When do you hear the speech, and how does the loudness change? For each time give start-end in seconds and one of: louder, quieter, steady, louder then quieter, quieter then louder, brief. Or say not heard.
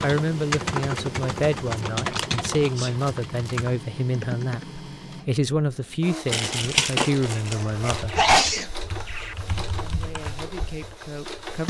0.0-8.2 steady
9.8-11.6 brief.